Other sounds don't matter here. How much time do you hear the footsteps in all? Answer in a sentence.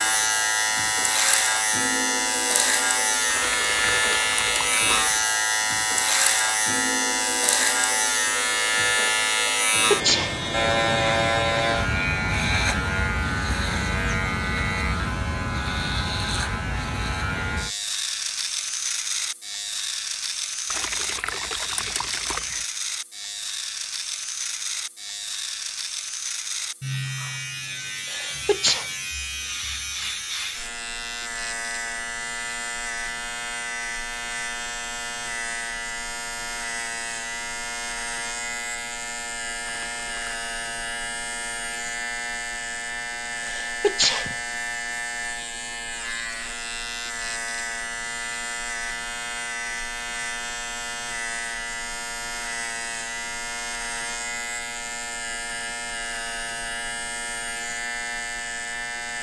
You can't hear the footsteps here.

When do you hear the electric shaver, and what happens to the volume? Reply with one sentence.
You can hear the electric shaver from 0.0 to 59.1 s, getting quieter.